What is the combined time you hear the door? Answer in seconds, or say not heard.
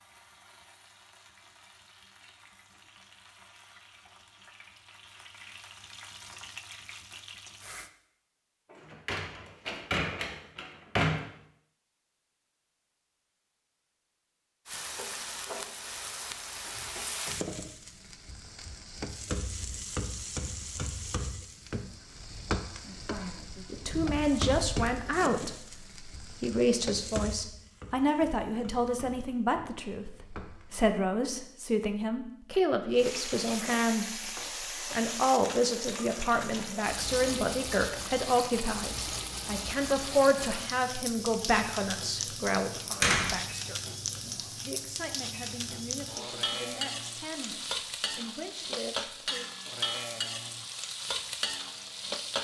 4 s.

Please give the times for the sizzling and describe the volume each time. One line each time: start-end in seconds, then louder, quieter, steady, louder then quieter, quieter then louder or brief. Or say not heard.
0.0-7.9 louder
14.7-30.9 quieter
32.9-52.3 steady.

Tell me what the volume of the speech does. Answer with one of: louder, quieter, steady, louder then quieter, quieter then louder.
quieter.